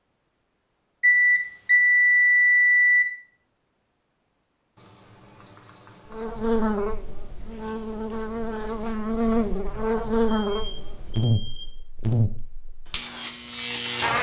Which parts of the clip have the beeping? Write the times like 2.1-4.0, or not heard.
1.0-3.0, 4.8-6.5, 10.5-11.7.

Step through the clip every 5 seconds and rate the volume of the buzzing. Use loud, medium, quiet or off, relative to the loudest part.
off, loud, loud.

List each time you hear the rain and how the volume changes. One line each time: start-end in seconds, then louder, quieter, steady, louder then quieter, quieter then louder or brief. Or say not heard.
not heard.